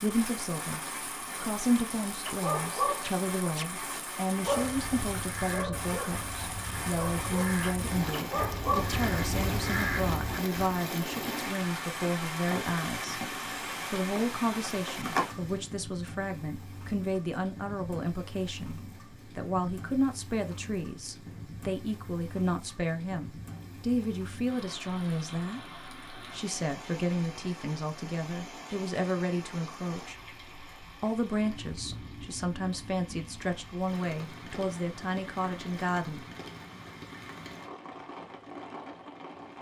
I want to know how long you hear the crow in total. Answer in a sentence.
The crow can be heard for 6 seconds in total.